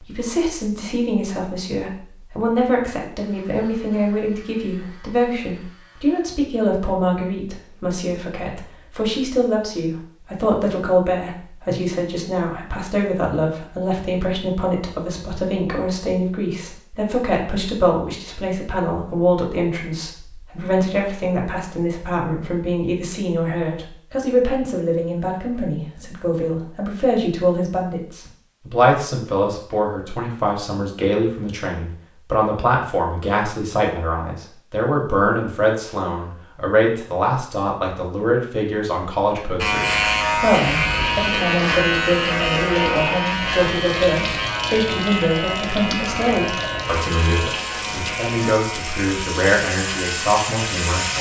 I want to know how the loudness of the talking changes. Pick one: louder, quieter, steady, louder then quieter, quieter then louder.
steady.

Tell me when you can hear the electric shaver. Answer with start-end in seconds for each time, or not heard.
3.1-6.2, 39.6-51.1.